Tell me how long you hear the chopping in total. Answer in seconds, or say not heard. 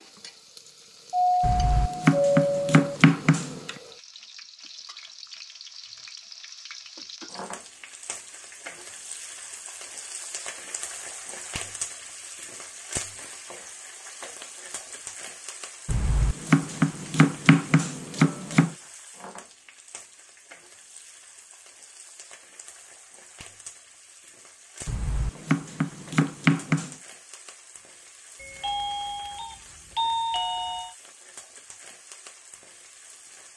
7 s.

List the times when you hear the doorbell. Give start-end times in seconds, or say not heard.
1.1-3.0, 28.4-30.9.